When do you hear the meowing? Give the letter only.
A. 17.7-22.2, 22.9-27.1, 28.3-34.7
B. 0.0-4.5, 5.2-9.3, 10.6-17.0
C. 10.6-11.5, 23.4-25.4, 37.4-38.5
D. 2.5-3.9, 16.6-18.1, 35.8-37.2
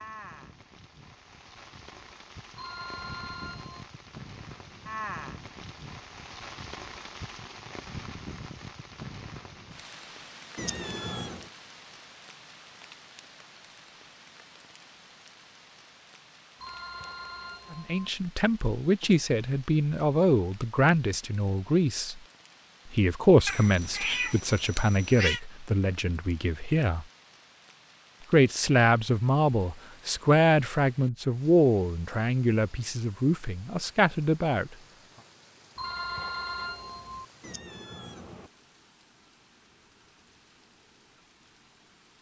C.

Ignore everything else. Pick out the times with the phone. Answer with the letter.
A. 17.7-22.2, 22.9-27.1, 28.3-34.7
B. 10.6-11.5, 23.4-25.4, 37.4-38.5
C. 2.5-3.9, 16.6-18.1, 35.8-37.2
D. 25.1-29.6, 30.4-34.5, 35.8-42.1
C.